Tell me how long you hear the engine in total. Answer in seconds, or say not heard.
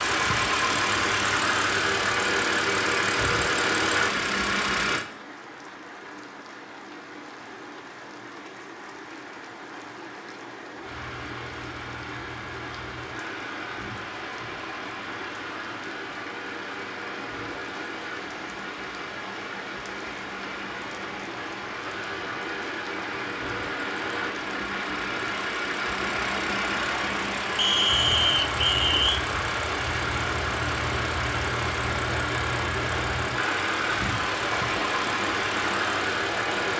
31 s.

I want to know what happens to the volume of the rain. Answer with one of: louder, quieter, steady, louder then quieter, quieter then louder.
louder.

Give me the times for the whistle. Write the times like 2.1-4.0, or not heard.
27.6-29.2.